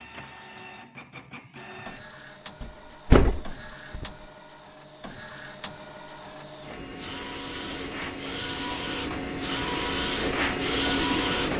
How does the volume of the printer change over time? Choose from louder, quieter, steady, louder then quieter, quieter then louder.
louder.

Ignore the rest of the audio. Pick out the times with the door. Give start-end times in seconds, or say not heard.
2.6-4.0.